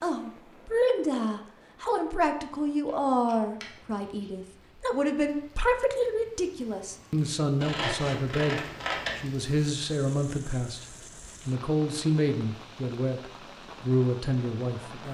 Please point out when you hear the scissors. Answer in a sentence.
You can hear the scissors from 2.9 to 4.3 s and from 7.5 to 9.2 s.